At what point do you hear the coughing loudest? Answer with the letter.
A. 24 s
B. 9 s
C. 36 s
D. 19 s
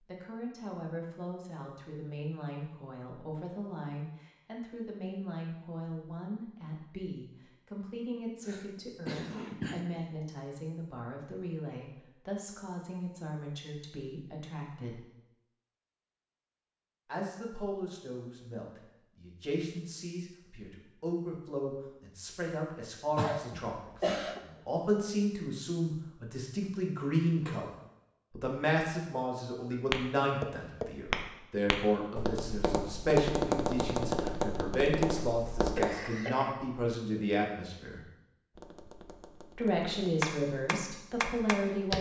A.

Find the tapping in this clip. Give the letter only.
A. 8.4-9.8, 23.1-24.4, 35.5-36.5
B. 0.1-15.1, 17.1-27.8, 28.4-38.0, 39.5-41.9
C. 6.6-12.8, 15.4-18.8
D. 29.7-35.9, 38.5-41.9
D.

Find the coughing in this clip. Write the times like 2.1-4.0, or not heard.
8.4-9.8, 23.1-24.4, 35.5-36.5.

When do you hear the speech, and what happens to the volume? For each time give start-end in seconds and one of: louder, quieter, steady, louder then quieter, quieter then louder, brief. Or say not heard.
0.1-15.1 steady
17.1-27.8 louder
28.4-38.0 steady
39.5-41.9 brief.